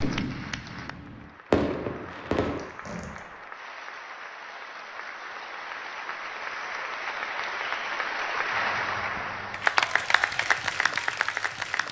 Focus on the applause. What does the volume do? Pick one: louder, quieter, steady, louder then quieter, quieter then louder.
louder.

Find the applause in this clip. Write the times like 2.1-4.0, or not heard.
0.0-11.8.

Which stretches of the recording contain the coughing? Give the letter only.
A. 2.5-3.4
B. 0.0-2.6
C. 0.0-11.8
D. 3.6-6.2
A.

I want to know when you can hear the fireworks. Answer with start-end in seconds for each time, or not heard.
0.0-2.6.